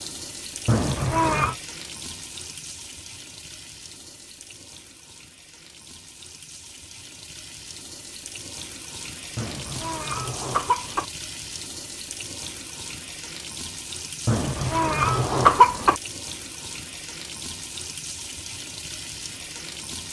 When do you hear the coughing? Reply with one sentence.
You can hear the coughing from 0.7 to 1.6 s, from 9.3 to 11.1 s and from 14.2 to 16.0 s.